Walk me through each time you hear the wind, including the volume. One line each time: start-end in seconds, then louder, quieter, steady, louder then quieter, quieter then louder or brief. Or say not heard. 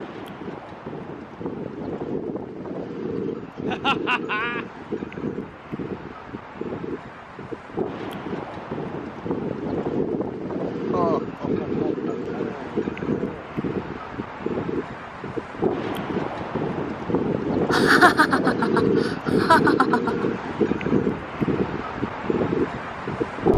0.0-23.5 louder.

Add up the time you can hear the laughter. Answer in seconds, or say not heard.
6 s.